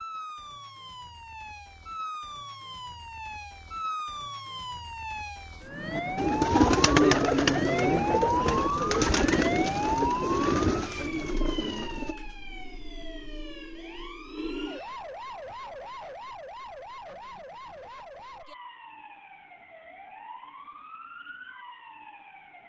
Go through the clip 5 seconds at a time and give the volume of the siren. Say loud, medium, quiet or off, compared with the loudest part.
medium, loud, medium, quiet, quiet.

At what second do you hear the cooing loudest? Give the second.
7 s.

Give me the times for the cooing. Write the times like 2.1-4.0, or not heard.
5.8-12.2.